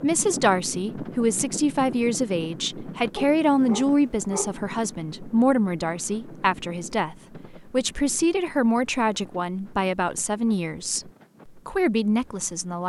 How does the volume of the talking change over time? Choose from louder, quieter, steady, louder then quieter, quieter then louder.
steady.